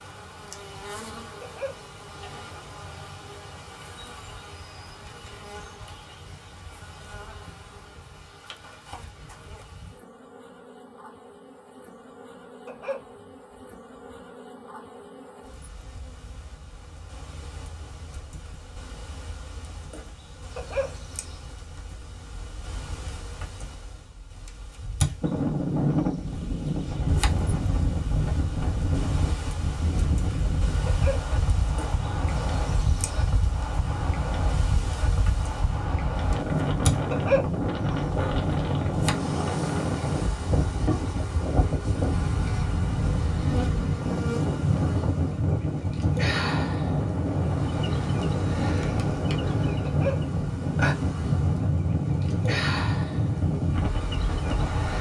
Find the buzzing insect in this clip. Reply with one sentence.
You can hear the buzzing insect from 0.0 to 54.9 s.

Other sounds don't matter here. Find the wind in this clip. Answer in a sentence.
The wind can be heard from 25.2 to 54.9 s.